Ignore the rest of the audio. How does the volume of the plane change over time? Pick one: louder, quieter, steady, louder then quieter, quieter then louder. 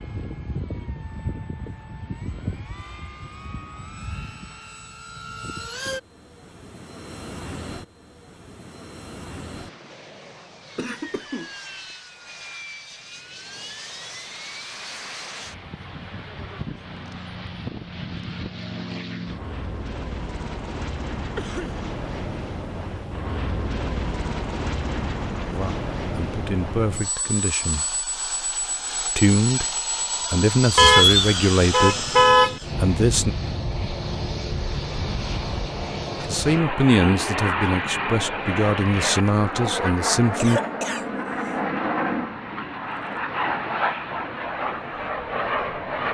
louder.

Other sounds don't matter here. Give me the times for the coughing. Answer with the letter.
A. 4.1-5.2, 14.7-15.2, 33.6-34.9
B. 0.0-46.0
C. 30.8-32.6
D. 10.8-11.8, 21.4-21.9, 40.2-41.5
D.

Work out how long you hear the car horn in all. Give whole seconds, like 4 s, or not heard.
2 s.